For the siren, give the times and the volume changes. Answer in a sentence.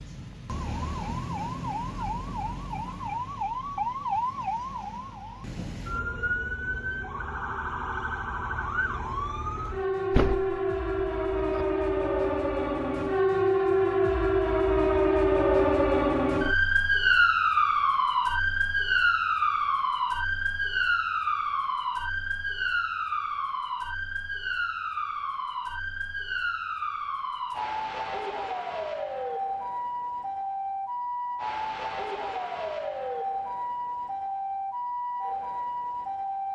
The siren can be heard from 0.0 to 36.5 s, getting louder then quieter.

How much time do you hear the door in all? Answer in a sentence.
The door can be heard for 2 seconds in total.